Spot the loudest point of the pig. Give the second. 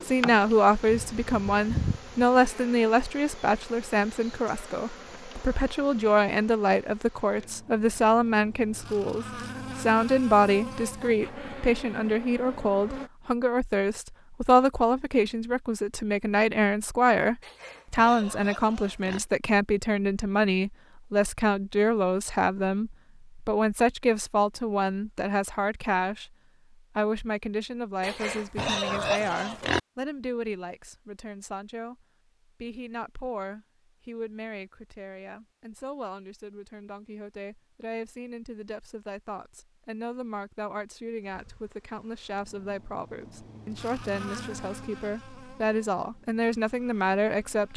29 s.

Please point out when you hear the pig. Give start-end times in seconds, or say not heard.
17.4-19.2, 28.0-29.8.